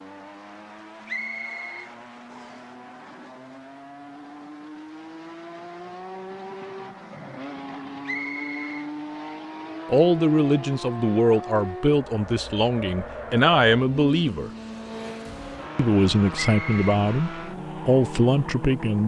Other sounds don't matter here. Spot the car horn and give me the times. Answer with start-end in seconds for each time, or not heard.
not heard.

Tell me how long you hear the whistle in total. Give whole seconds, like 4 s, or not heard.
3 s.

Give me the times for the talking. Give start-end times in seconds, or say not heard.
9.9-14.5, 15.8-19.0.